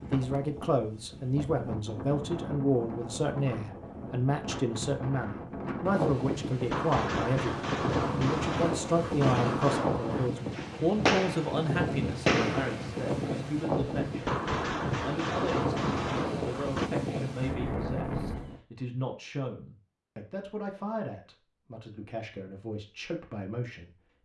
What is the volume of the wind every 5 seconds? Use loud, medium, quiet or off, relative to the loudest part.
medium, loud, loud, loud, off.